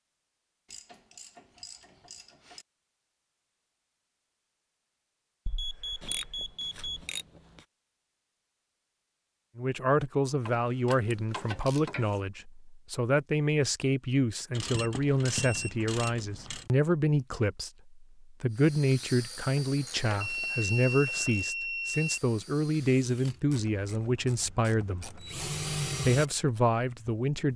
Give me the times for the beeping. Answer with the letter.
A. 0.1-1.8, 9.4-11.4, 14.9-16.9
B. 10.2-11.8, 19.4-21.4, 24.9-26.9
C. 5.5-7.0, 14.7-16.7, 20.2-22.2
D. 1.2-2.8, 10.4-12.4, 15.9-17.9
C.